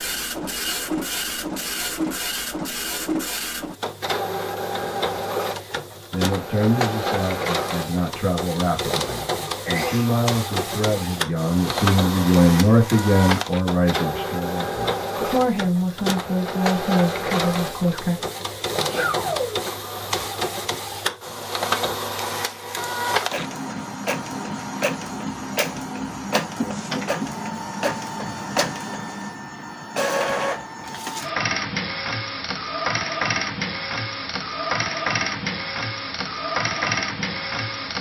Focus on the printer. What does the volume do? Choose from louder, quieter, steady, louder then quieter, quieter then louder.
steady.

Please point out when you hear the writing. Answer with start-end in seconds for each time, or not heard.
not heard.